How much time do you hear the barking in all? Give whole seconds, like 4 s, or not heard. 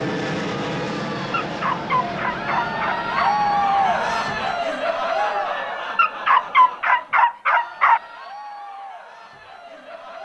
4 s.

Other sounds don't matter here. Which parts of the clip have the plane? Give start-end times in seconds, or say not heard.
0.0-4.7.